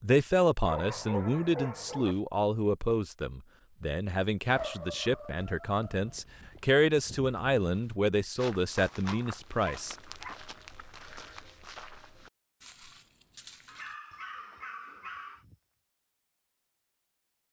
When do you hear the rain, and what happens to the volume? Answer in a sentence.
The rain can't be heard in this clip.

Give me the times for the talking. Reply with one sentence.
You can hear the talking from 0.0 to 9.9 s.